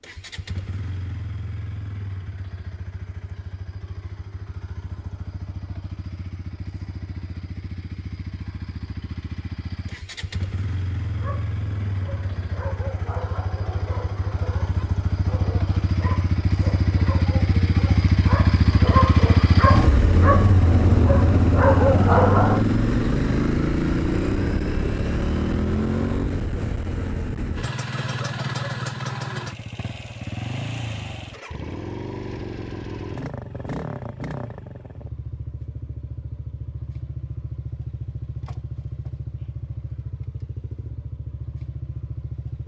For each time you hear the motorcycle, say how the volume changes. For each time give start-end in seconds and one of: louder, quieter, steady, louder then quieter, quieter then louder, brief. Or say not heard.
0.0-42.6 louder then quieter.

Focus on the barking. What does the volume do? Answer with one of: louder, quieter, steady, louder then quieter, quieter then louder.
louder.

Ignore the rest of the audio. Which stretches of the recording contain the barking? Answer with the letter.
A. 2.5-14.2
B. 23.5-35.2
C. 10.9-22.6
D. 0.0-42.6
C.